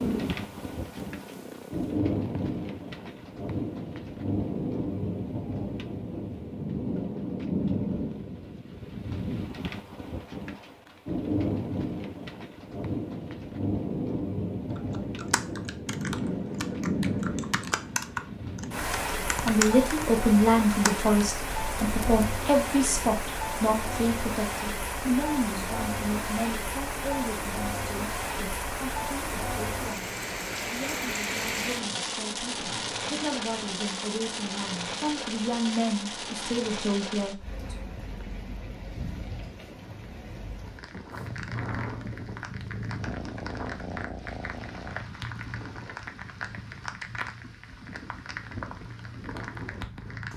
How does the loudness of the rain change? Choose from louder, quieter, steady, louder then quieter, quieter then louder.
quieter.